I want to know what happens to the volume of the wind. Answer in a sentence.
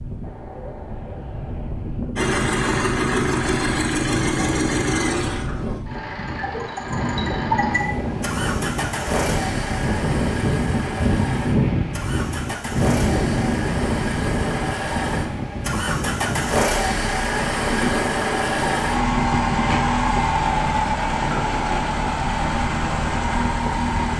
The volume of the wind goes up, then down.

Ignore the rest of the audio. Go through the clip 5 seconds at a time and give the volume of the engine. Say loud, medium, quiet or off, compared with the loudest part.
loud, medium, medium, loud, loud.